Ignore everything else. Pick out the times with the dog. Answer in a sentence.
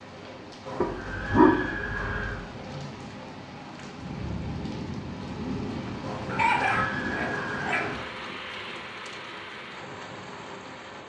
You can hear the dog from 0.8 to 2.4 s and from 6.2 to 8.0 s.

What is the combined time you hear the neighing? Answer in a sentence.
You can hear the neighing for 4 seconds altogether.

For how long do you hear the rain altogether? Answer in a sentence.
You can hear the rain for 11 seconds altogether.